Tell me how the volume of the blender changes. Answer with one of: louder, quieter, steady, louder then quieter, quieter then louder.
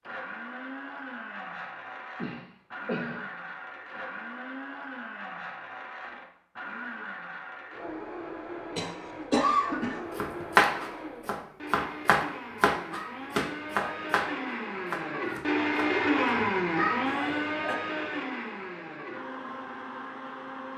louder.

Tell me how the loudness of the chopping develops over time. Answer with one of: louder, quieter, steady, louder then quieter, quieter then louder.
quieter.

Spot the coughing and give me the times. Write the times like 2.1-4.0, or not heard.
2.1-3.2, 8.8-10.4, 17.1-17.8.